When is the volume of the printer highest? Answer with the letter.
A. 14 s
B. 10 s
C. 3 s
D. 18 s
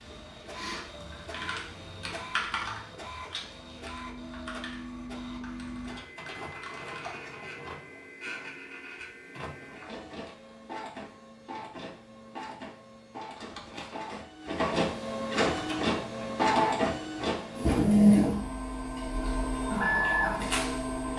D.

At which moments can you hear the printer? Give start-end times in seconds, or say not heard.
0.0-21.1.